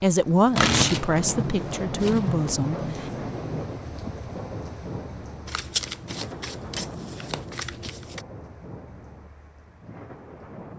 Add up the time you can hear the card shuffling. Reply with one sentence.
The card shuffling can be heard for 5 seconds in total.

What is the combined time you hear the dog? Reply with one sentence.
You can't hear the dog here.